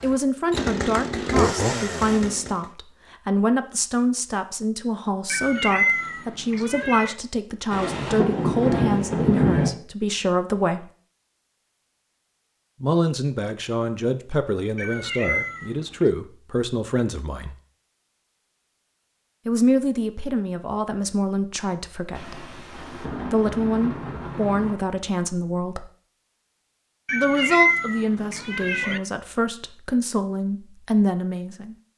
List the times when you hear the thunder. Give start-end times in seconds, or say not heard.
7.7-9.7, 22.1-24.8.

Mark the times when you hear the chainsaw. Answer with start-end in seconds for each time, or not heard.
0.0-2.6.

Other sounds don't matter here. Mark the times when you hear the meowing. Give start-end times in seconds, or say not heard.
5.3-7.2, 14.8-16.1, 27.1-29.0.